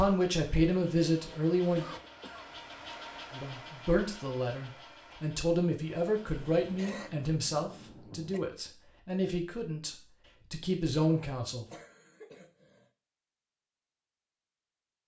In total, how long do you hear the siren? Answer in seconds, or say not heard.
not heard.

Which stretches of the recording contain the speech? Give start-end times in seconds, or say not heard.
0.0-1.9, 3.3-11.7.